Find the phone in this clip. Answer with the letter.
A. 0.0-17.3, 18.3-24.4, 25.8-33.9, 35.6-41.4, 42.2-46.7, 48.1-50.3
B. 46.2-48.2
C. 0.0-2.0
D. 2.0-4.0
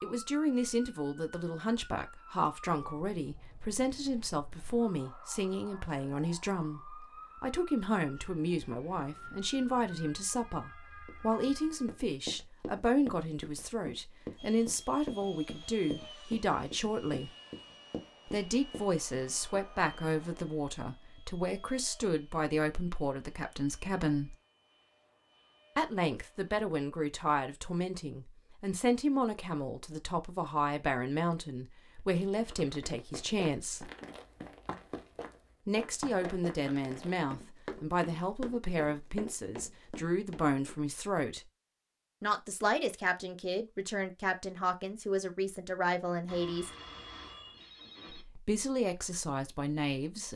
B.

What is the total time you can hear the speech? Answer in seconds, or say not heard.
44 s.